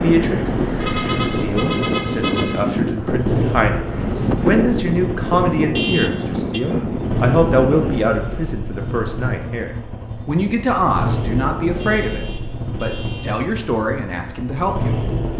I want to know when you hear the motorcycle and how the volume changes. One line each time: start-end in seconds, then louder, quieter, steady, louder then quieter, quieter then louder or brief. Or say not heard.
0.1-15.3 steady.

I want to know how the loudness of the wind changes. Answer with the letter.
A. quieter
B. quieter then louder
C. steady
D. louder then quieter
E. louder
C.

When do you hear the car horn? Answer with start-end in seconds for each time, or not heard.
0.8-2.8, 5.8-6.6, 11.8-13.3.